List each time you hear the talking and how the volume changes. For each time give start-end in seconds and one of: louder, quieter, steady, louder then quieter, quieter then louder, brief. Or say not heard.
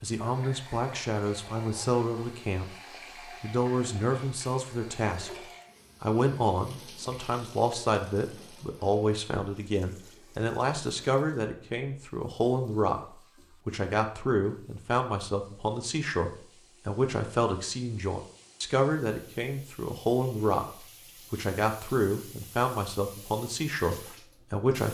0.0-2.7 brief
3.4-24.8 steady.